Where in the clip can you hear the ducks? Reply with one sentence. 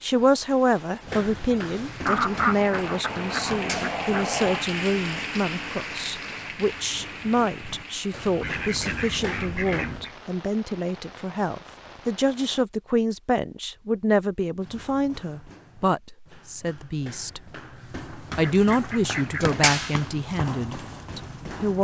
The ducks can be heard from 2.0 to 4.7 s, from 8.4 to 10.2 s and from 18.3 to 19.5 s.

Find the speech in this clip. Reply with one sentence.
You can hear the speech from 0.0 to 17.4 s and from 18.2 to 21.7 s.